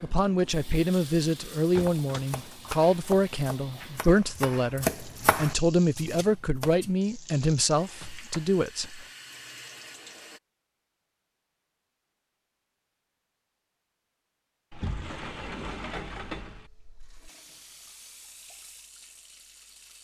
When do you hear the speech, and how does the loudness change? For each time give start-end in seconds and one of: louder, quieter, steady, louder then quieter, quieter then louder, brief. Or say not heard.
0.0-9.1 steady.